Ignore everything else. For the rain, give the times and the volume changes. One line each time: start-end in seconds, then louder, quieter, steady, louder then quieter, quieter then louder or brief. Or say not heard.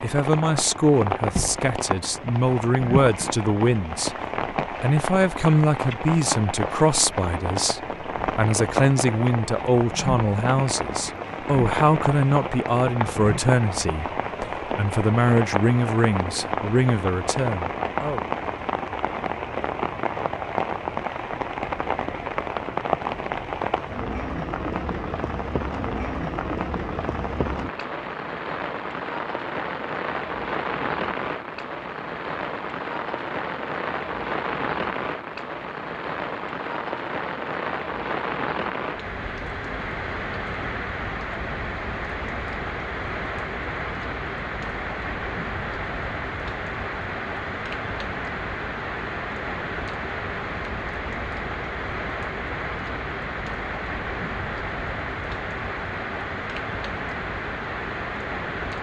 0.0-58.7 steady.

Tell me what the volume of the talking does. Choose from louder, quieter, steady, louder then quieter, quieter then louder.
steady.